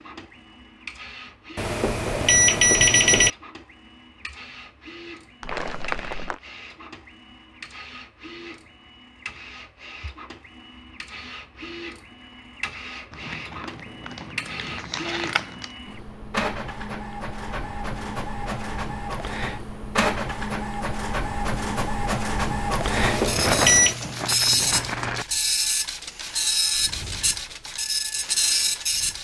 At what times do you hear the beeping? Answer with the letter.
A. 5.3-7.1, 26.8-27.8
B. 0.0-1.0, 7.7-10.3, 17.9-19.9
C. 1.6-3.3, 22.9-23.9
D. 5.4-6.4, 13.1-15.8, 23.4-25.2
C.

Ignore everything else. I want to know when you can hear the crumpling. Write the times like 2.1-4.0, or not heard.
5.4-6.4, 13.1-15.8, 23.4-25.2.